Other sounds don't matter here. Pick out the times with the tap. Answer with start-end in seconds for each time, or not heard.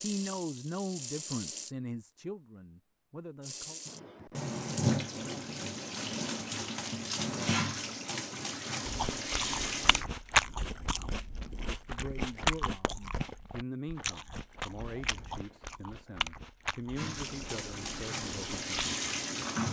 0.0-1.7, 3.4-10.1, 16.9-19.6.